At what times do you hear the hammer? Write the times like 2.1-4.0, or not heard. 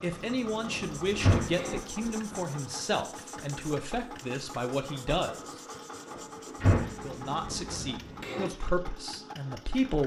0.1-1.8, 6.8-8.5.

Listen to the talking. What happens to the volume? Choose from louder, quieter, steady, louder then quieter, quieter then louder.
steady.